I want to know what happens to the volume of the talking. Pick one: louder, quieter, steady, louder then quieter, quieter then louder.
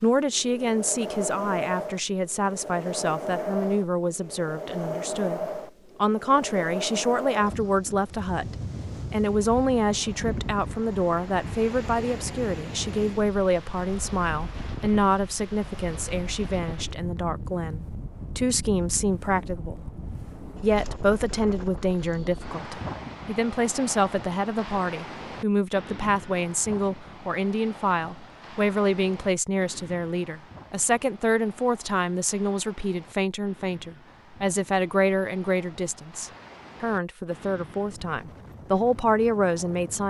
steady.